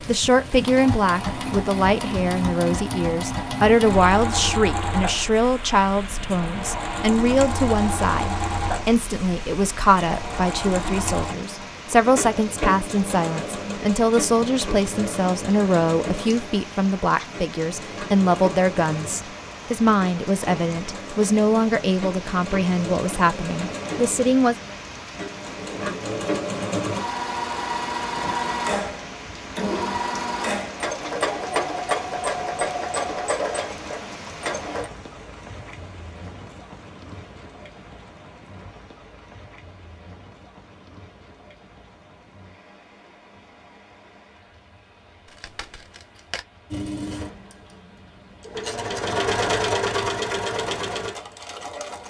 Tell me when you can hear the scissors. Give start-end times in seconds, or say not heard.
45.2-46.5.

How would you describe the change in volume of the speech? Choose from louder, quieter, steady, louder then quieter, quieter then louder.
steady.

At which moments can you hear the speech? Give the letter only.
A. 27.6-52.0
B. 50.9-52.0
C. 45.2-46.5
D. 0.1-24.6
D.